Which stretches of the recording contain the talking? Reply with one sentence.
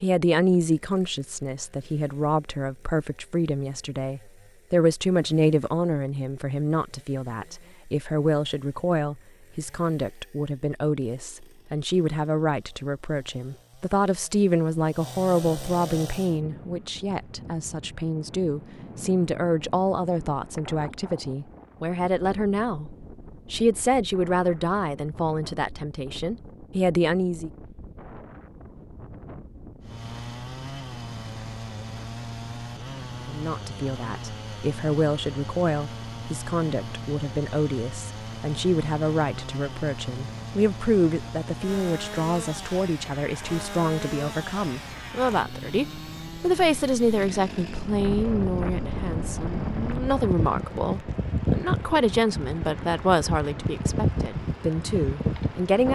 You can hear the talking from 0.0 to 27.5 s and from 33.2 to 55.9 s.